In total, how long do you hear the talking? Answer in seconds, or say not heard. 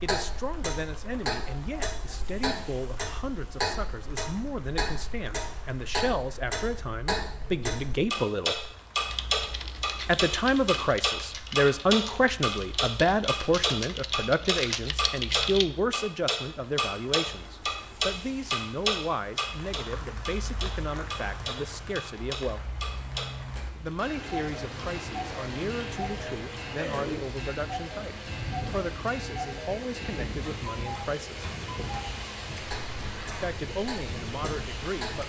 31 s.